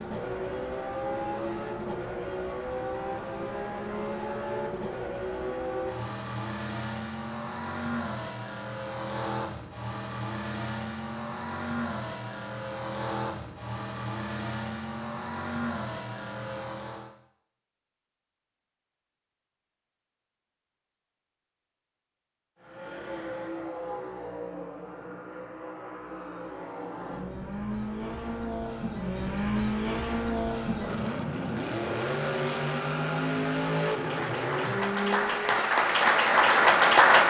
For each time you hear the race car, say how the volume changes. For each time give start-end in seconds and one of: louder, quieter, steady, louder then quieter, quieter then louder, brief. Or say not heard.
0.0-17.1 steady
22.6-35.7 louder.